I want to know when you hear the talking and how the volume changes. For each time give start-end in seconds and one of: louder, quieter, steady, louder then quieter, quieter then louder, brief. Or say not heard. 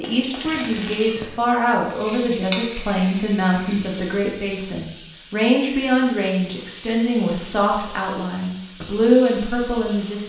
0.0-10.2 steady.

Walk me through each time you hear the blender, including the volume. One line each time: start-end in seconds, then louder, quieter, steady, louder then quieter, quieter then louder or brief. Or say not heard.
not heard.